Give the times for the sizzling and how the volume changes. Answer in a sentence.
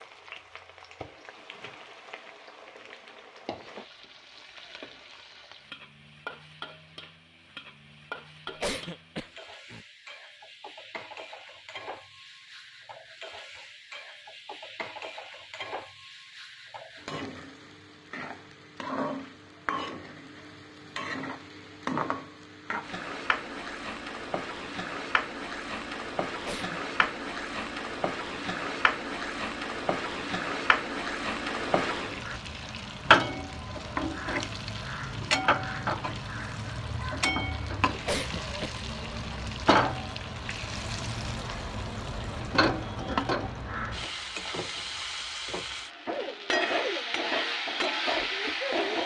The sizzling can be heard from 0.0 to 49.0 s, getting louder.